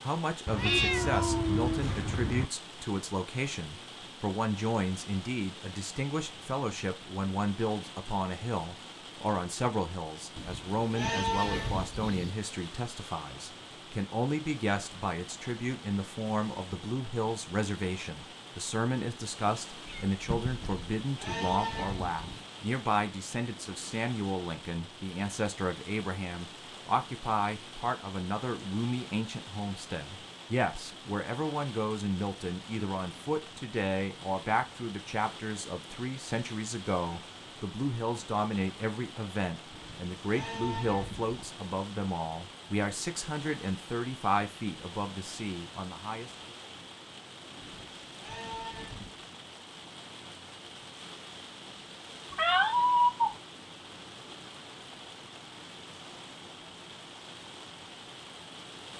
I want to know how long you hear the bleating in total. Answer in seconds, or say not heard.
7 s.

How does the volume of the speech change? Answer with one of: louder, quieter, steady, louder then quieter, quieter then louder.
steady.